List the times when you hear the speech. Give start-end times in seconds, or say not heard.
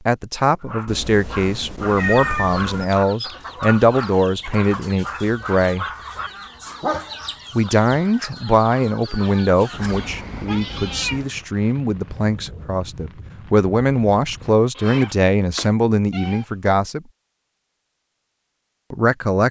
0.1-5.8, 7.5-17.0, 18.9-19.4.